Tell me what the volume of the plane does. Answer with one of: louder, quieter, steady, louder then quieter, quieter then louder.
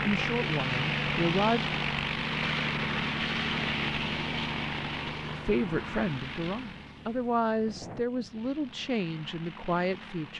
quieter.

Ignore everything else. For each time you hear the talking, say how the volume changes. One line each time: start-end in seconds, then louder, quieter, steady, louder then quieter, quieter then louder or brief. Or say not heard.
0.0-1.7 brief
5.3-10.3 steady.